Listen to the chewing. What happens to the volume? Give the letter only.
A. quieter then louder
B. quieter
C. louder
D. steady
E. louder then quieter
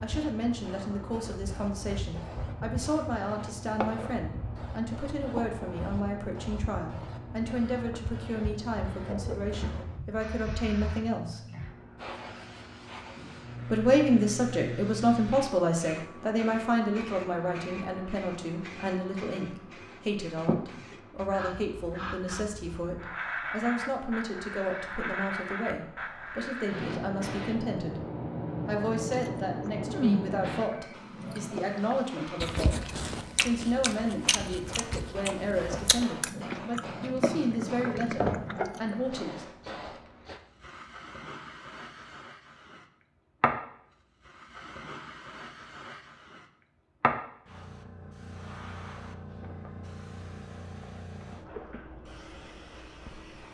D.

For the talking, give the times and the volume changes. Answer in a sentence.
You can hear the talking from 0.0 to 11.4 s, at a steady volume; from 13.7 to 28.0 s, getting quieter; and from 28.6 to 39.5 s, at a steady volume.